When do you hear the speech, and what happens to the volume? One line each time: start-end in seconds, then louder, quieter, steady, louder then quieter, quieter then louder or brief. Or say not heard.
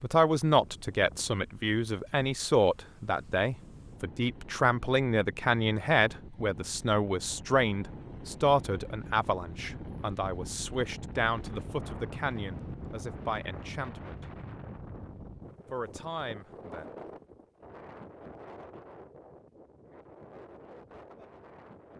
0.0-14.2 quieter
15.7-16.9 brief.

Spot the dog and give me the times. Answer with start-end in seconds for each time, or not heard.
not heard.